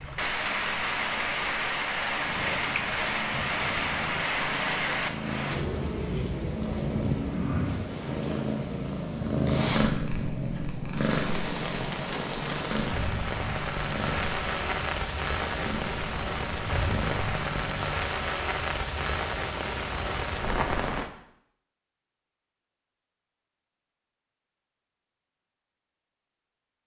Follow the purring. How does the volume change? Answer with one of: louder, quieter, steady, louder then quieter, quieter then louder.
louder then quieter.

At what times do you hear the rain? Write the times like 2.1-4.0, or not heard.
0.0-21.1.